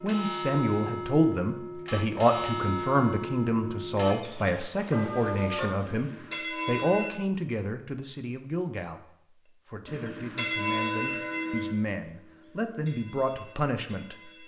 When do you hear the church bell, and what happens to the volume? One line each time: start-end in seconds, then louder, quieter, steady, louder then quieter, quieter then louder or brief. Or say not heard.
0.0-7.1 steady
9.8-14.4 quieter.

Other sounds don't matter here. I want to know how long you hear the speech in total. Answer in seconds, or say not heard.
14 s.